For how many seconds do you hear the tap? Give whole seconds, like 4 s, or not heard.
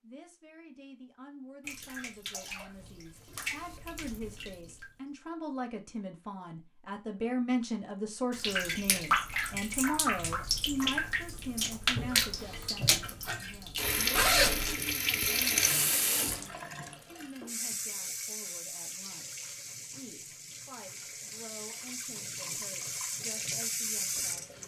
20 s.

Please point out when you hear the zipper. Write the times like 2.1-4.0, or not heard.
14.2-14.8.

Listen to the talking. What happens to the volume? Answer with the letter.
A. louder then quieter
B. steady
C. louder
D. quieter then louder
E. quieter
A.